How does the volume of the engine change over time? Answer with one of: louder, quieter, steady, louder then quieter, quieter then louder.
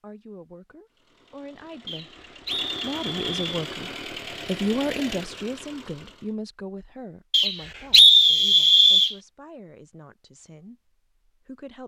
louder.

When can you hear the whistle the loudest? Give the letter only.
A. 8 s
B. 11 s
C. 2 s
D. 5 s
A.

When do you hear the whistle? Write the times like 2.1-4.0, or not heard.
1.9-3.4, 7.3-9.2.